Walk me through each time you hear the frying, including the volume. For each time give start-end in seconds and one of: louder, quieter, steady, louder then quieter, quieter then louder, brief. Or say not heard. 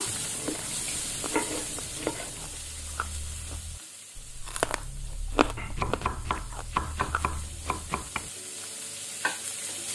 0.0-9.9 quieter then louder.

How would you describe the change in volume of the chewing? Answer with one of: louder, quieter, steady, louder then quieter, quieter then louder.
louder then quieter.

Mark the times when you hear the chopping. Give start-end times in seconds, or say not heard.
0.1-2.5, 5.5-8.2.